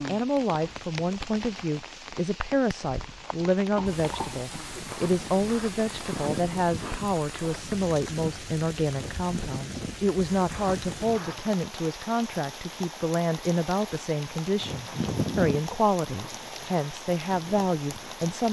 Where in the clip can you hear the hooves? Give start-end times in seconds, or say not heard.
3.7-11.6, 14.4-18.4.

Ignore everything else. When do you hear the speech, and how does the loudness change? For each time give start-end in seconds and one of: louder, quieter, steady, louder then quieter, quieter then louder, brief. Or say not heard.
0.1-18.4 steady.